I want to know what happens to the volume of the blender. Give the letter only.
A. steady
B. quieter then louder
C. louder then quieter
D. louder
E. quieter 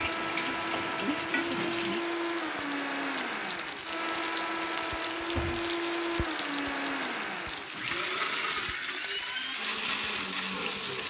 A.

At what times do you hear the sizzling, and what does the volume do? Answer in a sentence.
You can hear the sizzling from 0.0 to 11.0 s, at a steady volume.